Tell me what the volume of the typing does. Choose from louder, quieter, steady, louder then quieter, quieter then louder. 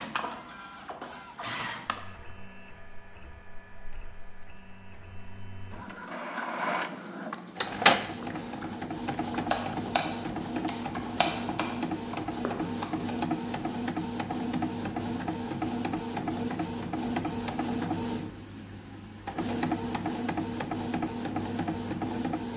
louder then quieter.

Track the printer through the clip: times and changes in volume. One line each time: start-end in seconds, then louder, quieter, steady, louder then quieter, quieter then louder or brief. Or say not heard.
0.0-22.5 louder.